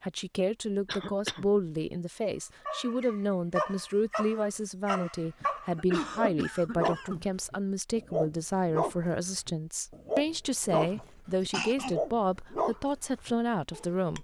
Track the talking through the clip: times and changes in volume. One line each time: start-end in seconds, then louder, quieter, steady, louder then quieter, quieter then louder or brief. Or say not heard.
0.0-14.1 steady.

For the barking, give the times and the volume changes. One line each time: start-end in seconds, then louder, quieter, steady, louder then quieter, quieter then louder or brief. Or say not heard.
2.6-14.1 steady.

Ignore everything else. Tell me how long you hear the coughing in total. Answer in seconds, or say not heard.
4 s.